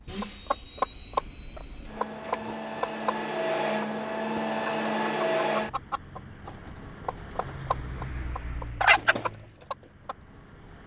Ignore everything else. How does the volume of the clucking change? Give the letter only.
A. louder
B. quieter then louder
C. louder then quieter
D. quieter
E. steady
B.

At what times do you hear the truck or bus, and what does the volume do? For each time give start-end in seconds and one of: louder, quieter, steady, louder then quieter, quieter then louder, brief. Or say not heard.
0.0-10.8 louder then quieter.